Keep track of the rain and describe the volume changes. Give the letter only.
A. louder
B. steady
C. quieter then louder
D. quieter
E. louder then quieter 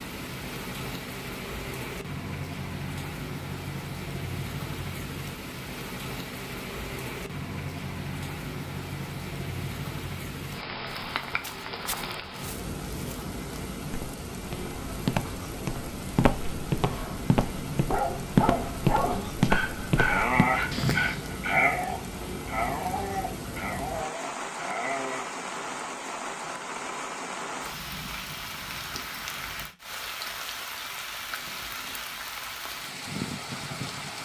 B.